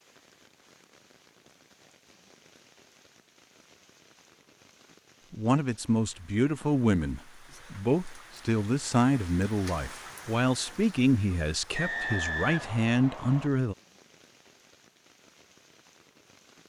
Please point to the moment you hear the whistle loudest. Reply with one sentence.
The volume of the whistle peaks at 12 seconds.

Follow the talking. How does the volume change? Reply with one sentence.
The loudness of the talking stays about the same.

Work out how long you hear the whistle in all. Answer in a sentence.
The whistle can be heard for 2 seconds in total.